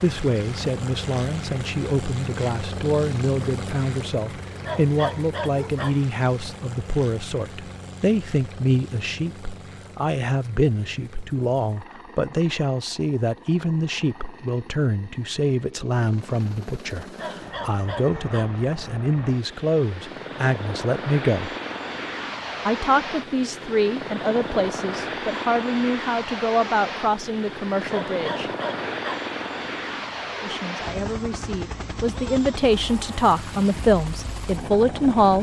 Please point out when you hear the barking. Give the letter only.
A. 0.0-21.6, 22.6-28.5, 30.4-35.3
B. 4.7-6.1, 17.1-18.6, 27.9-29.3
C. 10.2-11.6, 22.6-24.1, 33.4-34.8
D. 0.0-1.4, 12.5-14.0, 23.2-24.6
B.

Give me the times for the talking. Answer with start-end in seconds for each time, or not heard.
0.0-21.6, 22.6-28.5, 30.4-35.3.